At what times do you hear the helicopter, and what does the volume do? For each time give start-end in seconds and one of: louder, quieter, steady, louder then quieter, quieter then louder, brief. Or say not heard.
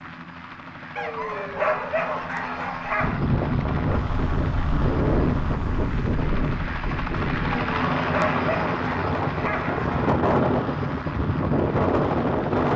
0.0-12.7 louder then quieter.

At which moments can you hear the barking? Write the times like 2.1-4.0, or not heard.
0.9-3.2, 7.5-10.2.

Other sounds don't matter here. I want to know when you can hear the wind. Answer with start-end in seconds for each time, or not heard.
3.0-12.7.